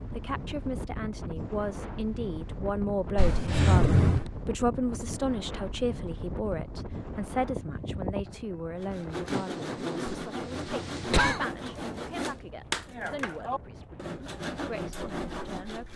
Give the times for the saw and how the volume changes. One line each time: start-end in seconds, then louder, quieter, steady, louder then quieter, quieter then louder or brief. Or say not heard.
8.8-15.9 steady.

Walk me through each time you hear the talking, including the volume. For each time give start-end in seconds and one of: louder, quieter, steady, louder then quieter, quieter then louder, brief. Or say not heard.
0.1-15.9 quieter.